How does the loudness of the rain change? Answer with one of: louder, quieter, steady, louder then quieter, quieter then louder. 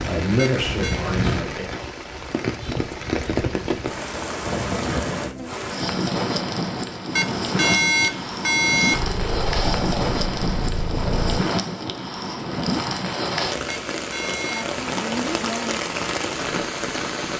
steady.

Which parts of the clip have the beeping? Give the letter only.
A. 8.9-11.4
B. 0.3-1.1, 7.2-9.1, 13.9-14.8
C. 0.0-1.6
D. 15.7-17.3
B.